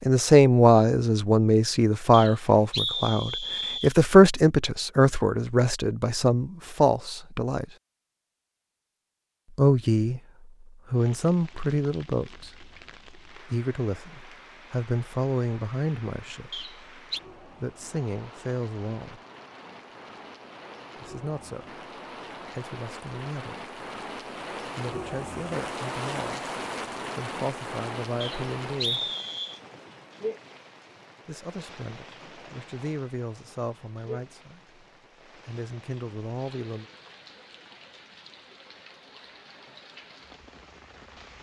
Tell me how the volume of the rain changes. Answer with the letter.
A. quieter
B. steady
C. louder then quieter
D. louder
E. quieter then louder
C.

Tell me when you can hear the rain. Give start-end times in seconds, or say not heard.
10.9-41.3.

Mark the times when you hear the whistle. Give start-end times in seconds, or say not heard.
2.1-4.0, 16.5-17.2, 28.2-29.6.